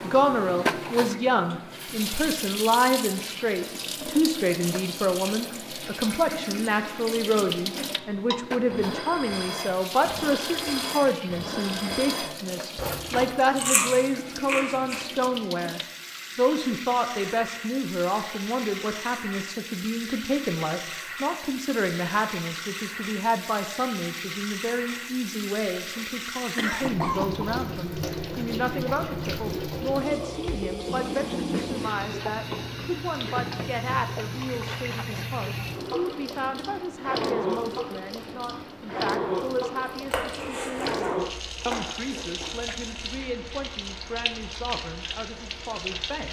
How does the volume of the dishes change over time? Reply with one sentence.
The volume of the dishes stays about the same.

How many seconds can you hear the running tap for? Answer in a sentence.
You can hear the running tap for 46 seconds altogether.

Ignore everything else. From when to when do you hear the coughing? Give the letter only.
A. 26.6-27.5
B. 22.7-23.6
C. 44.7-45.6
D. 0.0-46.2
A.